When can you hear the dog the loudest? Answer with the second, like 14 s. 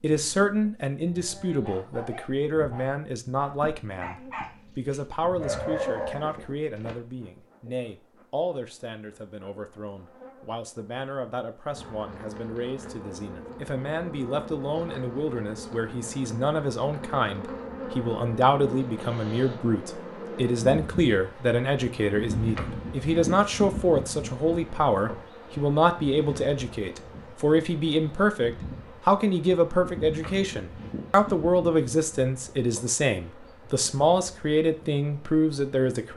6 s.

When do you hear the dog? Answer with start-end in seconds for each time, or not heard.
1.1-6.8.